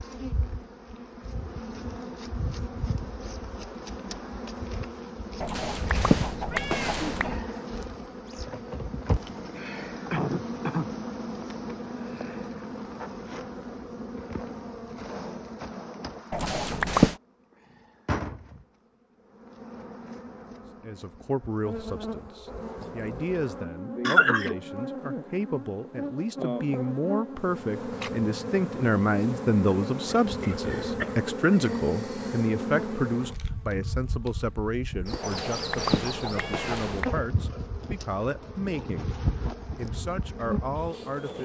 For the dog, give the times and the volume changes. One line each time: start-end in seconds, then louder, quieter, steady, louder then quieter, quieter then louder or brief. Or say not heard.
not heard.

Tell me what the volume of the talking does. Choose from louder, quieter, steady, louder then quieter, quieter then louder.
louder then quieter.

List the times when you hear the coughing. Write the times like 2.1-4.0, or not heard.
9.6-11.2, 24.1-24.6, 30.1-31.1.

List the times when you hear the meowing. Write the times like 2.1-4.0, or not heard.
5.4-7.4, 16.3-17.1, 35.2-37.2.